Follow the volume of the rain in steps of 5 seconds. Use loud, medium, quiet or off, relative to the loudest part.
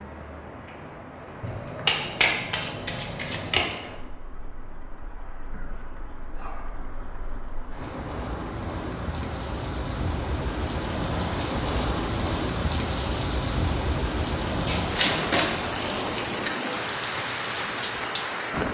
quiet, medium, loud, loud.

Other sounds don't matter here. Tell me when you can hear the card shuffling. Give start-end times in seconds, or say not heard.
1.4-3.6, 14.7-16.5.